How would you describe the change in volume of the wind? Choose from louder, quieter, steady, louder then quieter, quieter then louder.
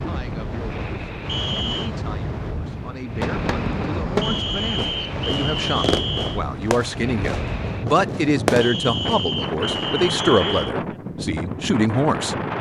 steady.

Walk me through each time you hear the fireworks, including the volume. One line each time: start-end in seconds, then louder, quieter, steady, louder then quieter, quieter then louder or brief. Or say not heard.
3.2-10.0 quieter then louder.